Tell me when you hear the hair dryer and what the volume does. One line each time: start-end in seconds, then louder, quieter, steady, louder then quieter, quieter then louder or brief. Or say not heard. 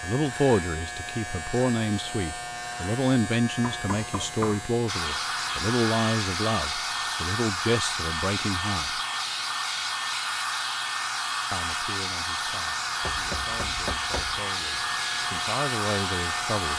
4.8-16.7 steady.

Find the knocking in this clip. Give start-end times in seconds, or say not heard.
3.6-4.7, 13.0-14.4.